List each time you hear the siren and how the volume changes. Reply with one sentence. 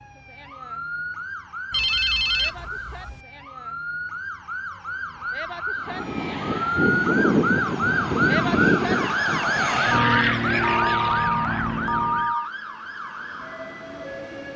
The siren can be heard from 0.0 to 14.5 s, getting louder then quieter.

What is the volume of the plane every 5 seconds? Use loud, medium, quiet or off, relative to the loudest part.
off, loud, loud.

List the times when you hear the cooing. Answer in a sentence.
The cooing can't be heard in this clip.